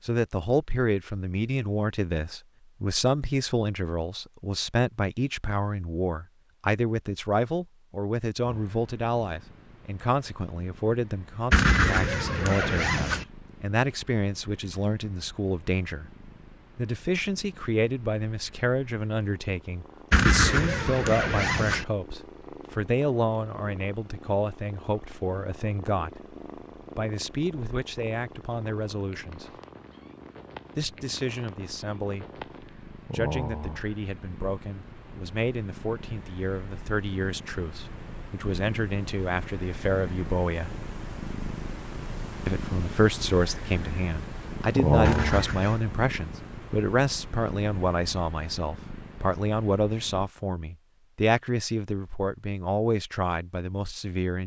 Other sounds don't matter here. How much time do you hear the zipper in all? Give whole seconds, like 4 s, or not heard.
4 s.